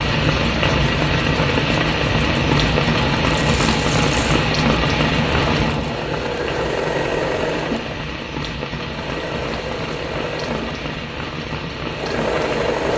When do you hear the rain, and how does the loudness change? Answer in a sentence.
The rain can be heard from 0.0 to 12.9 s, getting quieter.